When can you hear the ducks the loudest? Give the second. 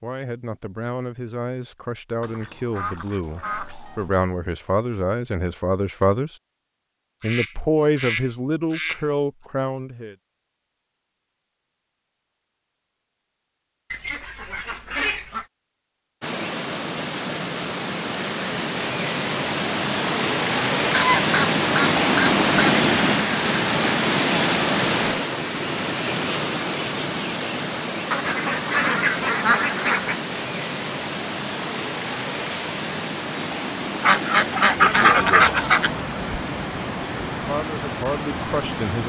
35 s.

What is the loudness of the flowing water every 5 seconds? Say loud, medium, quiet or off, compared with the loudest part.
off, off, off, medium, loud, medium, medium, medium.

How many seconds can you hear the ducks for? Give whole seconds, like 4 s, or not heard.
11 s.